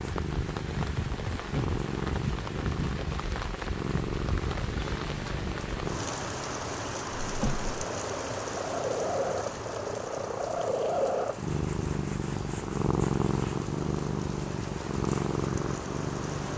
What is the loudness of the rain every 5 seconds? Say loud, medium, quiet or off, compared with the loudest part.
loud, loud, medium, loud.